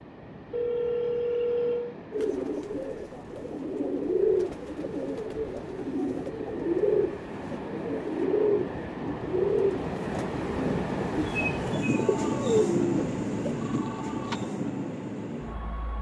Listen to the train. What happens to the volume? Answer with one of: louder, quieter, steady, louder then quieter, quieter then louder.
louder.